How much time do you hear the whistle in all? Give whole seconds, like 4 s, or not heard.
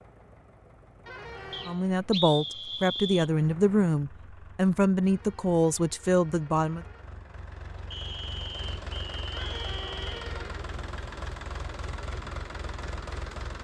4 s.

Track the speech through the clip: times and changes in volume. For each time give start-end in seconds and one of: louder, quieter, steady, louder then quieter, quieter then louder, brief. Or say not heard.
1.6-6.8 steady.